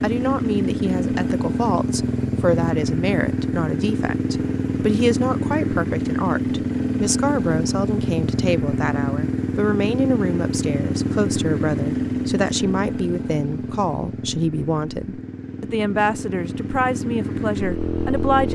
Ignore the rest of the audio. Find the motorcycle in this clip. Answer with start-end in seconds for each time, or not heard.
0.0-18.4.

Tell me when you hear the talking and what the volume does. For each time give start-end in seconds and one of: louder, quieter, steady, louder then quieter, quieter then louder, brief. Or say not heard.
0.0-18.4 steady.